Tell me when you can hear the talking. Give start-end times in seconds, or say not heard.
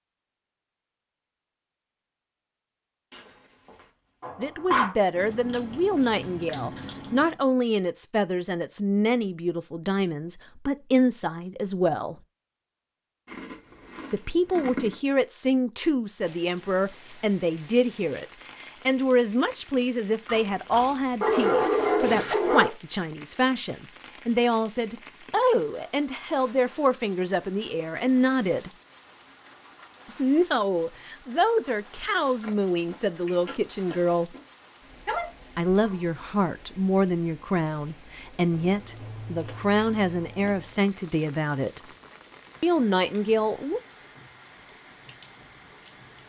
4.3-12.2, 14.1-28.7, 30.1-34.4, 35.5-41.8, 42.6-43.8.